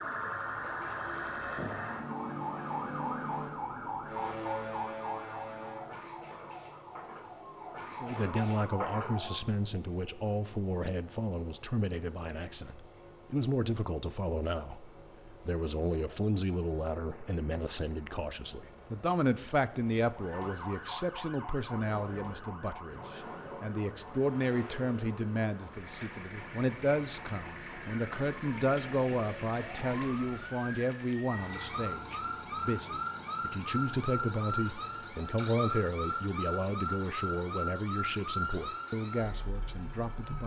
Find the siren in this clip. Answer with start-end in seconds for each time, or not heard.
0.0-9.5, 20.1-40.4.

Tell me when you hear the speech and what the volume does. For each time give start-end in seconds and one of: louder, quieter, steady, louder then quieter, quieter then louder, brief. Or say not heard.
8.0-40.4 steady.